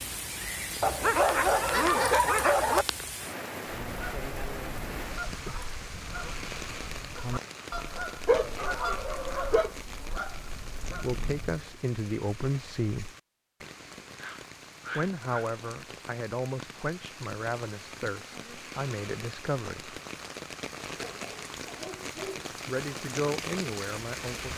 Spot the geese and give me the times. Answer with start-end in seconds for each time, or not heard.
3.8-11.7.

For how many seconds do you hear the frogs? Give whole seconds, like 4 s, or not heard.
not heard.